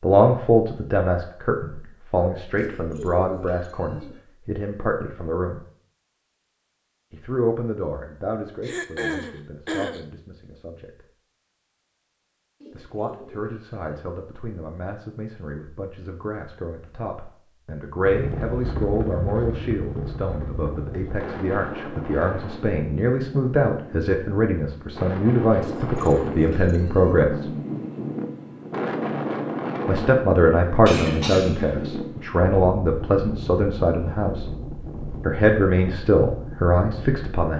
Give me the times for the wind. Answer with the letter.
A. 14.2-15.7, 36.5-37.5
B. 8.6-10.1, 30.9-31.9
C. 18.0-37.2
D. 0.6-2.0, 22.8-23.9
C.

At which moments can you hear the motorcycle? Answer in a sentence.
You can't hear the motorcycle here.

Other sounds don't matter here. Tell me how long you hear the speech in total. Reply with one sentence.
The speech can be heard for 31 seconds in total.